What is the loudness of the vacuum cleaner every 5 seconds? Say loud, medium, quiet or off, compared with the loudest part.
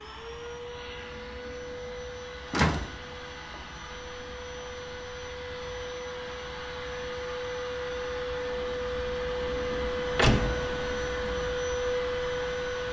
medium, loud, loud.